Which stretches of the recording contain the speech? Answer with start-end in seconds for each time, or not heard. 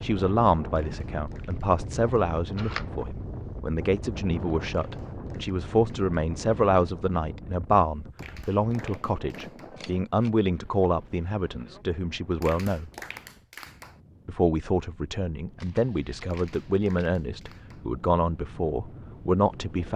0.0-12.9, 14.2-19.9.